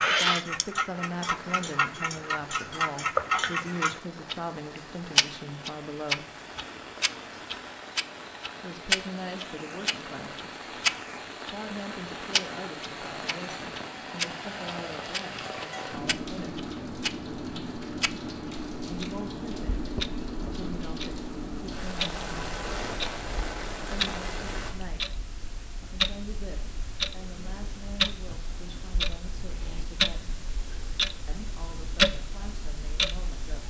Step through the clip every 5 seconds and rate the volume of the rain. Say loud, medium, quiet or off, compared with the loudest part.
medium, medium, loud, loud, loud, off, off.